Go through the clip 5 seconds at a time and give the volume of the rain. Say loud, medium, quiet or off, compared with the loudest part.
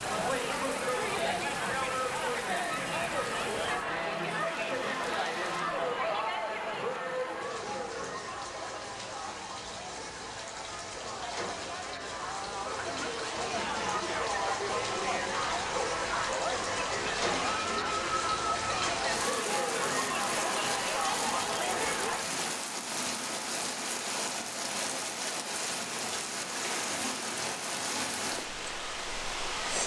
medium, medium, medium, loud, loud, loud.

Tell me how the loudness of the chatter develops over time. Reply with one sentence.
The volume of the chatter goes down, then up.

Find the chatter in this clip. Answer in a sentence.
The chatter can be heard from 0.0 to 22.2 s.